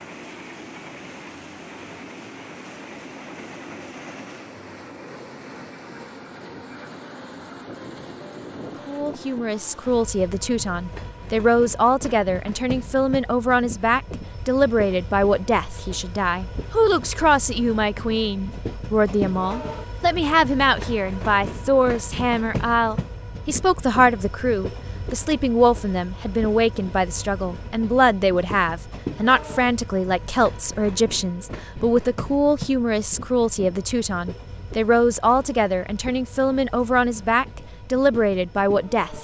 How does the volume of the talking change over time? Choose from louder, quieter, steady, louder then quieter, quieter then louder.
steady.